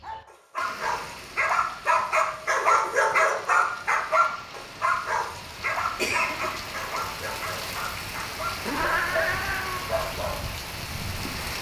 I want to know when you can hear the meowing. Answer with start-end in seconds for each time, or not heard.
8.7-9.8.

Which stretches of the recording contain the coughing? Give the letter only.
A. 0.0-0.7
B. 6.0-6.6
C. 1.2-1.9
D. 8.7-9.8
B.